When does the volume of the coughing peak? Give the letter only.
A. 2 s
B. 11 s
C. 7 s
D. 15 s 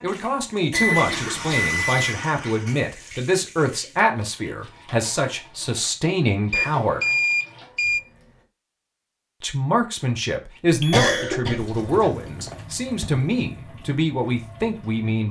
B.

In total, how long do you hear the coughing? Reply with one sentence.
The coughing can be heard for 4 seconds in total.